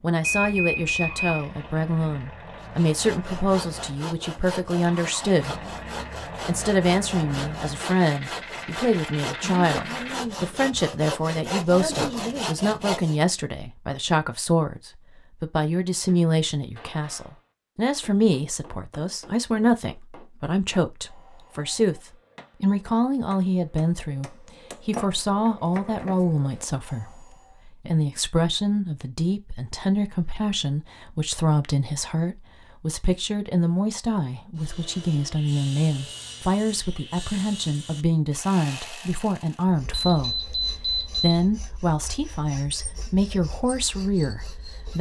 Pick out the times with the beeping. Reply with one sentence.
The beeping can be heard from 0.2 to 1.4 s and from 39.9 to 41.5 s.